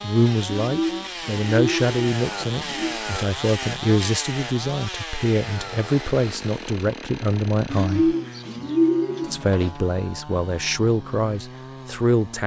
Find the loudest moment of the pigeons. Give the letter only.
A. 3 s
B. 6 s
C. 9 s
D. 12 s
C.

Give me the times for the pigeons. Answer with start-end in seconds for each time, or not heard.
0.5-3.0, 7.7-9.8.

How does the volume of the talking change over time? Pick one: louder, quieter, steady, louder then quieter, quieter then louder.
steady.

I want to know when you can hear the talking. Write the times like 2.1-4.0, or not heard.
0.0-8.2, 9.3-12.4.